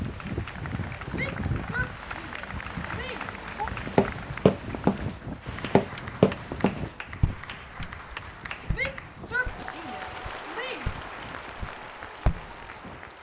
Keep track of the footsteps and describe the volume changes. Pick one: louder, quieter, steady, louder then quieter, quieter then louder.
quieter then louder.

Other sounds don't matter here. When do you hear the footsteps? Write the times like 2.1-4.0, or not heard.
3.7-12.7.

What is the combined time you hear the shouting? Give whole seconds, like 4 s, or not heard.
5 s.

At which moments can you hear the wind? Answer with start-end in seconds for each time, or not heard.
0.0-13.1.